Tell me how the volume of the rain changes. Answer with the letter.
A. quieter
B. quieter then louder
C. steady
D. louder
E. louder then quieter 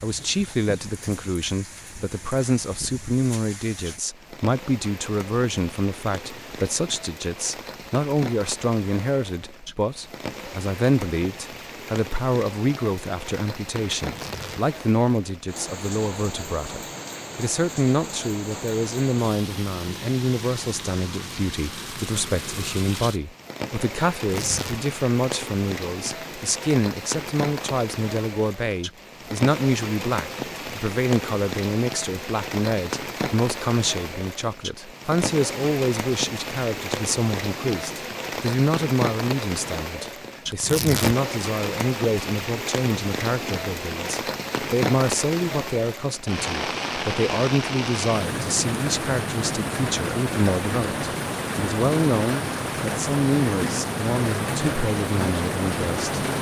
D.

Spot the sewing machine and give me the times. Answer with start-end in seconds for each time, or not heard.
not heard.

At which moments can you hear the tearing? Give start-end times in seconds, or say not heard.
13.9-14.6, 24.2-24.8, 40.5-41.1.